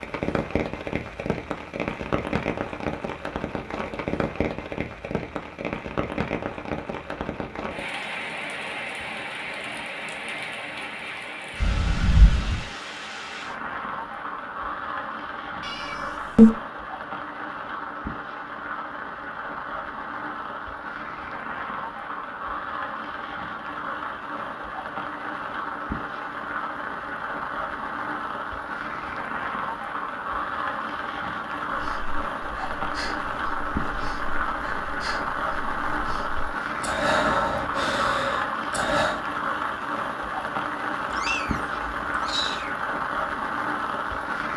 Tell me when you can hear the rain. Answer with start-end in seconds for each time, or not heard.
0.0-44.5.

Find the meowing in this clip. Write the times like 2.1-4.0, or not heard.
11.6-12.7, 15.6-16.5, 41.1-42.7.